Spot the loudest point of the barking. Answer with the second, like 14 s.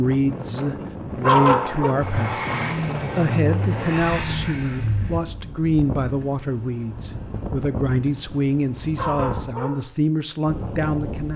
1 s.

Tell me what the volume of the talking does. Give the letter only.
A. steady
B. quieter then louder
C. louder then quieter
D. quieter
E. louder
A.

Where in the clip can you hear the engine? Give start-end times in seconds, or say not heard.
2.0-5.2.